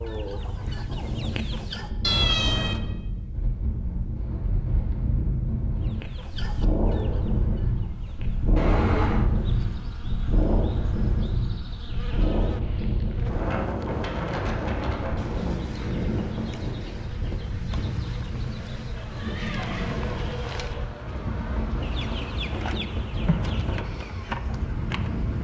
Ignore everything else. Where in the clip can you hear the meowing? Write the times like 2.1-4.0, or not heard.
2.0-2.8, 8.6-9.3, 18.9-20.9.